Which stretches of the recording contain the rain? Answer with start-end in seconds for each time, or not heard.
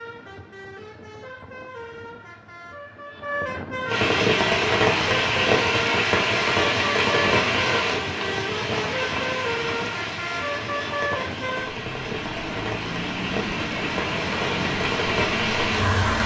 3.9-16.2.